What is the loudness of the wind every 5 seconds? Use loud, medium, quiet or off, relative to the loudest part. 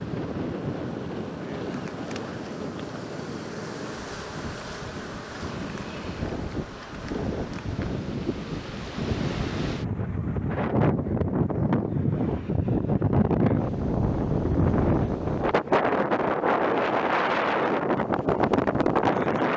medium, medium, loud, loud.